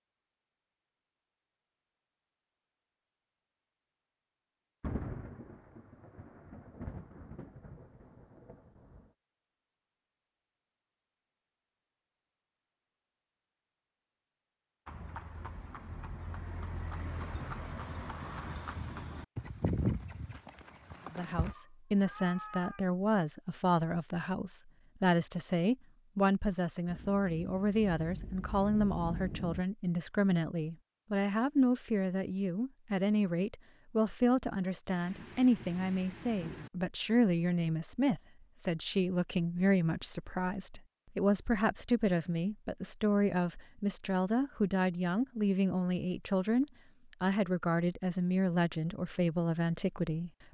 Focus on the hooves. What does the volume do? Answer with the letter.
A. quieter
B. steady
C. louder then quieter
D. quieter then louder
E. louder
C.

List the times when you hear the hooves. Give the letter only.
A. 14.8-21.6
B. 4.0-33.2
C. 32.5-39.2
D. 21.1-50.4
A.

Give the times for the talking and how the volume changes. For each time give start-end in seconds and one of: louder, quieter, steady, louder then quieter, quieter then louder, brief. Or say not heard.
21.1-50.4 steady.